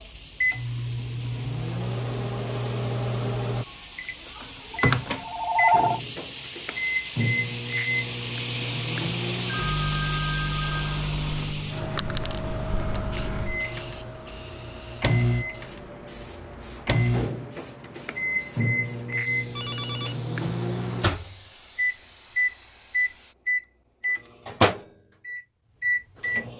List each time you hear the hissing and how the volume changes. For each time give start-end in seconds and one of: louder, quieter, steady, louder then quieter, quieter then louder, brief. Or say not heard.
0.0-23.4 louder then quieter.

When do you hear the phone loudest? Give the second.
6 s.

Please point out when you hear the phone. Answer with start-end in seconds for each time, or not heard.
4.7-6.0, 9.4-11.0, 19.6-20.1.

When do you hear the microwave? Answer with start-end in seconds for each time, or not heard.
0.0-26.5.